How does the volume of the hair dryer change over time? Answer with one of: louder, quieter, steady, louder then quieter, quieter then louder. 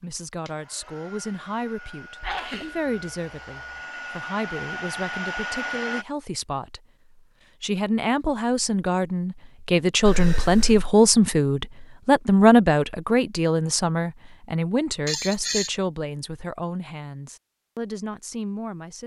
louder.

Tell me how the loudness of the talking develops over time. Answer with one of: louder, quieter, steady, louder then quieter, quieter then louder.
louder then quieter.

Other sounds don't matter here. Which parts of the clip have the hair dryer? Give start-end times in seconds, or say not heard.
0.0-6.0.